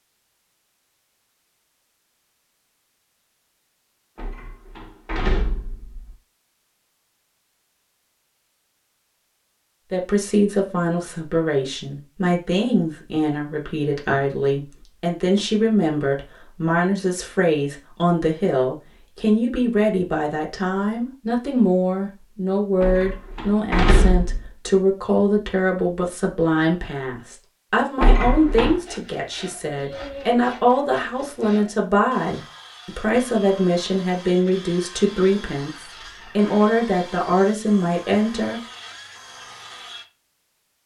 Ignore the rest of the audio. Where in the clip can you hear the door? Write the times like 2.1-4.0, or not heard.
4.2-6.2, 22.8-24.5, 28.0-28.8.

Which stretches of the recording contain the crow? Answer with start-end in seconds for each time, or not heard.
not heard.